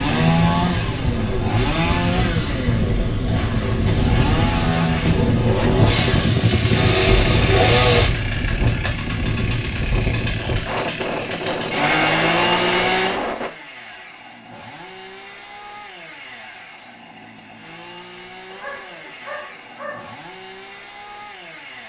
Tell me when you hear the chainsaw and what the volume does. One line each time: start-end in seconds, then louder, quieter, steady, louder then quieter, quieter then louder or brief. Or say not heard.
0.0-21.8 quieter.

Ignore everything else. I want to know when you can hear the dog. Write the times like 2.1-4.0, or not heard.
18.5-20.1.